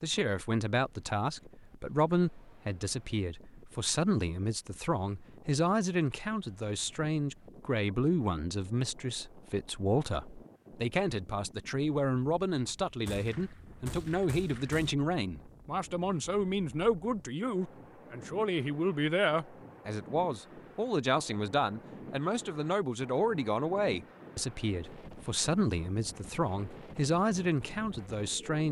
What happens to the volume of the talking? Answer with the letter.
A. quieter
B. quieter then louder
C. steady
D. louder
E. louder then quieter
C.